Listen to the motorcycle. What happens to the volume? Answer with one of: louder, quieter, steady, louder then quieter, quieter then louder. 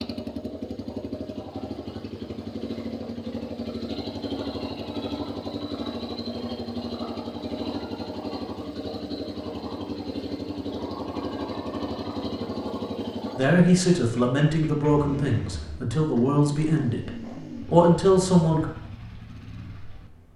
quieter.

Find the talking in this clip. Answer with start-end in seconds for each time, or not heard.
13.3-18.6.